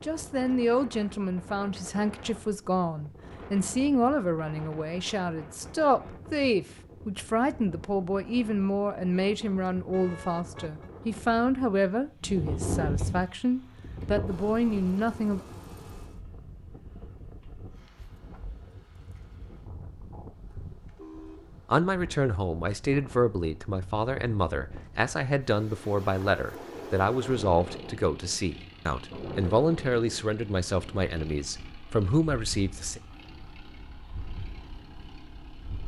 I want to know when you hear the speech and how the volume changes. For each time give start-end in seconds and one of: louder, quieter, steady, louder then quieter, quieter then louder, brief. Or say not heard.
0.0-15.4 steady
21.6-33.0 steady.